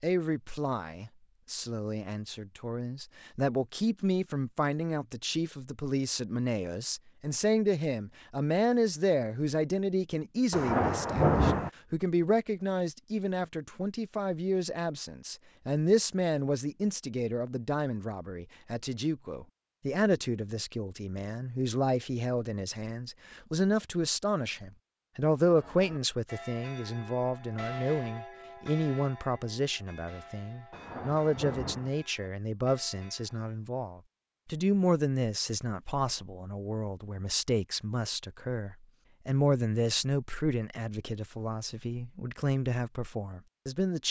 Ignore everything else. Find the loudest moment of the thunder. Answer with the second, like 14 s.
11 s.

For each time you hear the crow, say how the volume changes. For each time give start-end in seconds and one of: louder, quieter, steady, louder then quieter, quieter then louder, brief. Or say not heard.
not heard.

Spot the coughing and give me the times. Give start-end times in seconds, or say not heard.
not heard.